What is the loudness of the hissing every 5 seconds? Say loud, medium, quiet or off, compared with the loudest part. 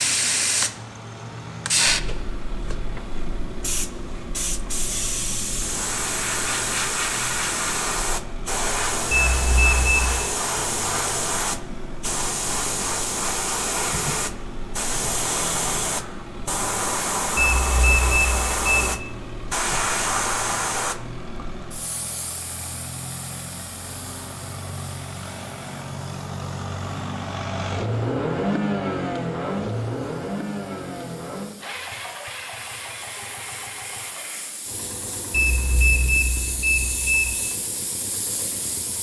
loud, loud, loud, loud, medium, quiet, quiet, medium.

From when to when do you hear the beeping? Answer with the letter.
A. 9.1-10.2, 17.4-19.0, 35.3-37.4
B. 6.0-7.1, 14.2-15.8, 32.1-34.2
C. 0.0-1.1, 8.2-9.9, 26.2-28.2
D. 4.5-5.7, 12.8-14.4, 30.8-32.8
A.